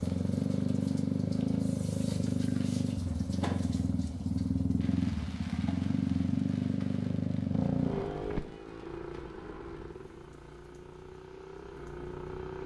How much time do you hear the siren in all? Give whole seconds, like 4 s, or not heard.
not heard.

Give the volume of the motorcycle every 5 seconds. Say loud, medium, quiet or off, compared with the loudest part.
loud, loud, quiet.